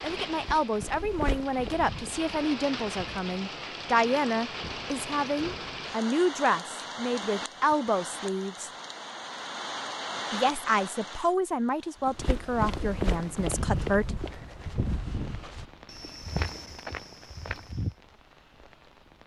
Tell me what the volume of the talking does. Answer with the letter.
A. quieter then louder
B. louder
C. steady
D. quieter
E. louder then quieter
C.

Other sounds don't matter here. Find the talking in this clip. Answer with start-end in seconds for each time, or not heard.
0.0-8.7, 10.3-14.2.